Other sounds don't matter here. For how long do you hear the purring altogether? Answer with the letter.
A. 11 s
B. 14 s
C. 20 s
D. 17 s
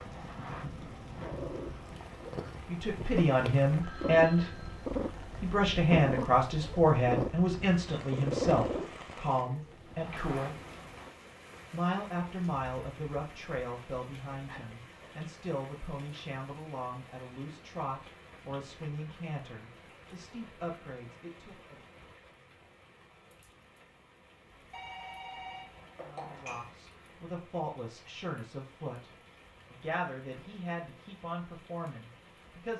A.